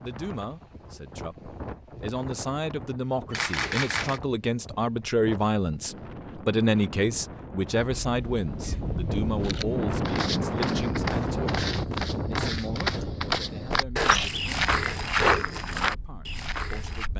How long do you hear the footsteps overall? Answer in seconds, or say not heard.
7 s.